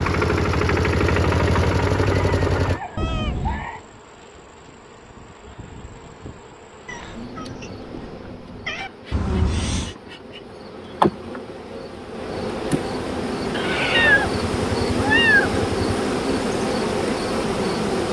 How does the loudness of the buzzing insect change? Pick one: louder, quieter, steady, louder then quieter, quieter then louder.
louder.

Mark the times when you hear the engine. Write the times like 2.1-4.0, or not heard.
0.0-2.8.